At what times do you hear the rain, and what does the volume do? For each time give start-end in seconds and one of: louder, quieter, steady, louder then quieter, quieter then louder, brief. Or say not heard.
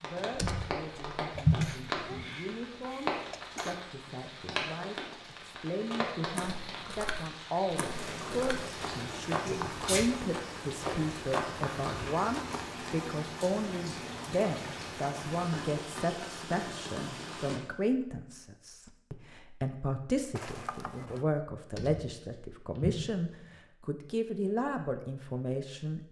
0.0-17.6 steady.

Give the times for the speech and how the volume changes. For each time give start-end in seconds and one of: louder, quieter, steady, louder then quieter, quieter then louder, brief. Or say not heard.
0.0-26.0 louder.